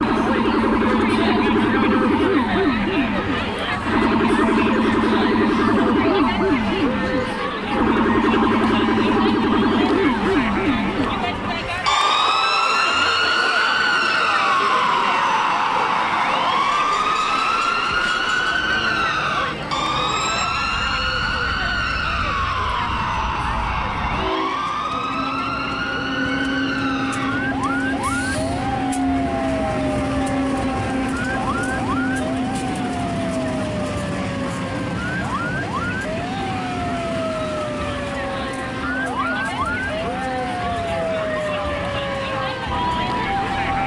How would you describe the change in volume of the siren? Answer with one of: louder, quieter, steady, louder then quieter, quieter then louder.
quieter.